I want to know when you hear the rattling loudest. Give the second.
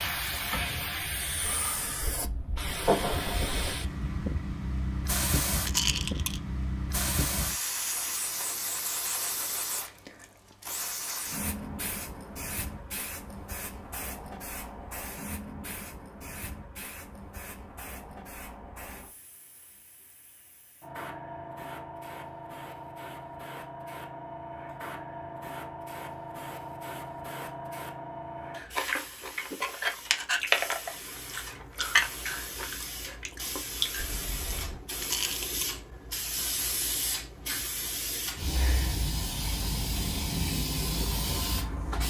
6 s.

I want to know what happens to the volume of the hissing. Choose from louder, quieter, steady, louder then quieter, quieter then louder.
quieter then louder.